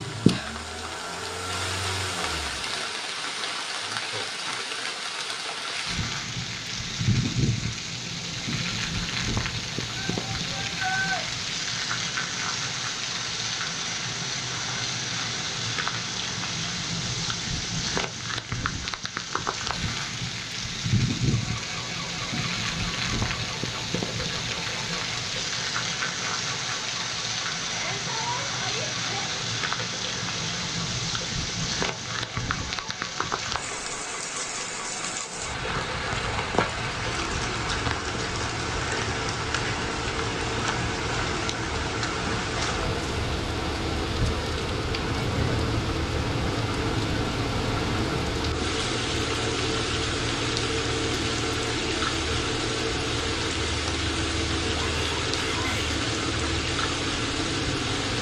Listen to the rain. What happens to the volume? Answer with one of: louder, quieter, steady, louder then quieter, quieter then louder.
steady.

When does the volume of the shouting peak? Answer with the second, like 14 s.
11 s.